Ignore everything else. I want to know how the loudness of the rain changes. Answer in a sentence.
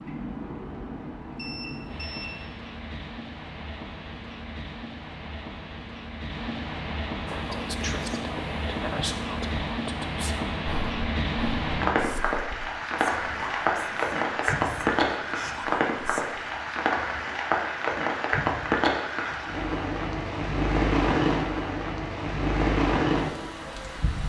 The loudness of the rain goes up.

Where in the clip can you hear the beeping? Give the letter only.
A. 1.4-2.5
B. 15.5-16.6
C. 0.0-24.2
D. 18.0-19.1
A.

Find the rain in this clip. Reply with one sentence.
The rain can be heard from 0.0 to 24.2 s.